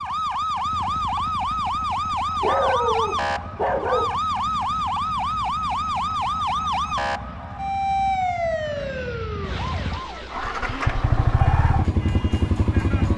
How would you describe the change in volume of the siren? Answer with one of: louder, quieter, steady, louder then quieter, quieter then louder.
quieter.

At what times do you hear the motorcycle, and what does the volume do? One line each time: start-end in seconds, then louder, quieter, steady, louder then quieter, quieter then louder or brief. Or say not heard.
0.0-13.1 louder.